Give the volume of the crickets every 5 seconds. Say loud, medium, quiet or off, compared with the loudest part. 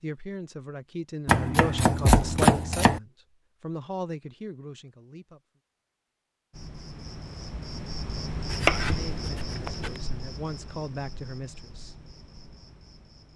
off, loud, medium.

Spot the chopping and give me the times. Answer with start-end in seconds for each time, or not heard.
1.2-3.0, 8.5-9.9.